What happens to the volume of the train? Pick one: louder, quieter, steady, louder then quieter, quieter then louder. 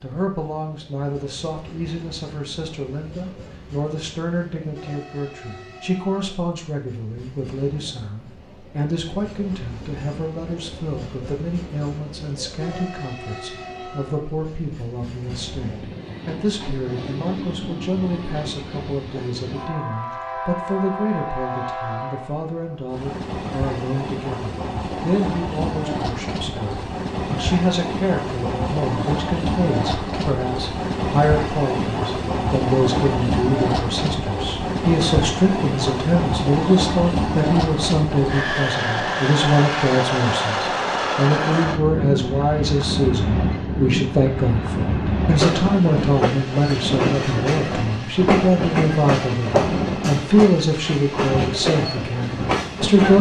louder.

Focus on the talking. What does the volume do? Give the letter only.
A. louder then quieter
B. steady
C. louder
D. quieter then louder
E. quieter
C.